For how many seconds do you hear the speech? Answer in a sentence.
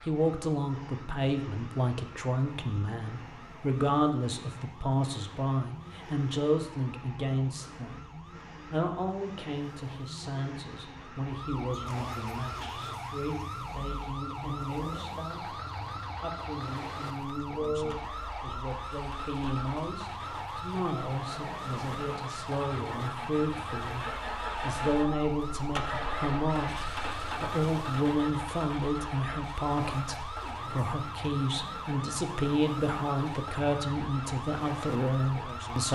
The speech can be heard for 36 seconds in total.